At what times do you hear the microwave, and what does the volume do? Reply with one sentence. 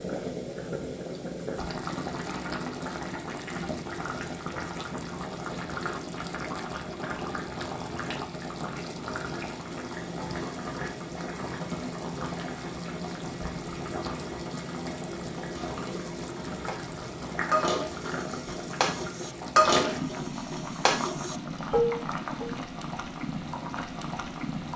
The microwave can't be heard in this clip.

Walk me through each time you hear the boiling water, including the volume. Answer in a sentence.
The boiling water can be heard from 0.0 to 24.7 s, at a steady volume.